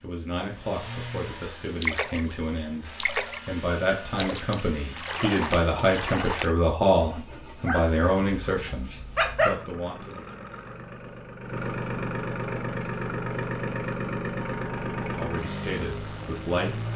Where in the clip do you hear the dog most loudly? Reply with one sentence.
The volume of the dog peaks at 9 seconds.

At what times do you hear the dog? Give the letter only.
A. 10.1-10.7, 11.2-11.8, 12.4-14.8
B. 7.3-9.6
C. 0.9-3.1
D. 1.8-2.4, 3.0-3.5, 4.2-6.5
B.